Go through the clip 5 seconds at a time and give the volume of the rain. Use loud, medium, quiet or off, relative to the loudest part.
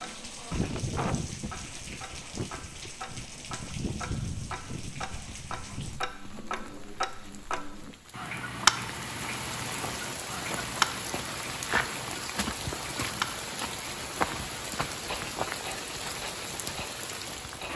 loud, medium, loud, loud.